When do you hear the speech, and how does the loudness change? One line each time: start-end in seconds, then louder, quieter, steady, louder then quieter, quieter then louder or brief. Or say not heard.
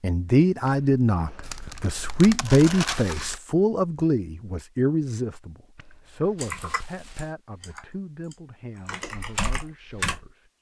0.0-10.4 quieter.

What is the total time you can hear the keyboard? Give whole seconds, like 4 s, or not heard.
4 s.